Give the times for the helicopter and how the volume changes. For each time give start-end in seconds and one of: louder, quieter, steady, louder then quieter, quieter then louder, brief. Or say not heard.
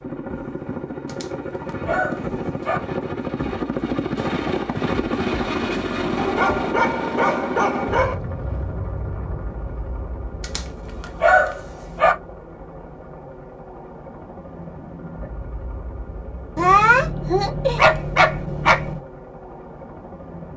0.0-20.5 quieter.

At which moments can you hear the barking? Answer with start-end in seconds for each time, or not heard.
1.1-2.8, 6.2-8.2, 10.4-12.2, 16.6-19.0.